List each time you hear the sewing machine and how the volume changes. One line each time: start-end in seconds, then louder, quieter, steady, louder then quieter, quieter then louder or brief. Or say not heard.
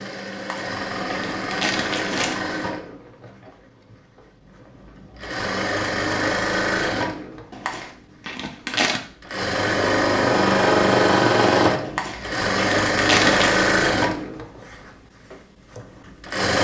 0.0-16.6 louder.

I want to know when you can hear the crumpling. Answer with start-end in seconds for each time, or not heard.
0.3-2.4, 7.5-9.0, 11.8-13.7.